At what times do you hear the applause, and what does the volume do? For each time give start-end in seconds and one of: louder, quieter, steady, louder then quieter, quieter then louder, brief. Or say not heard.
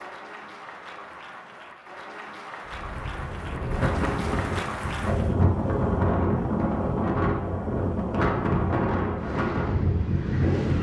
0.0-5.3 louder
9.2-10.7 brief.